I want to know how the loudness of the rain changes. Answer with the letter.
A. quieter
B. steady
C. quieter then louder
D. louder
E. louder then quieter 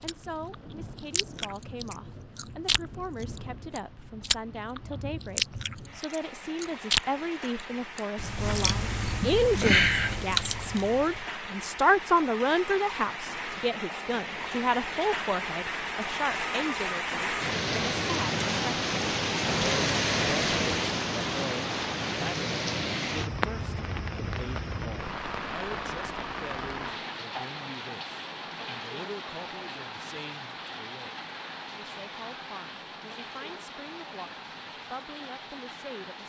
E.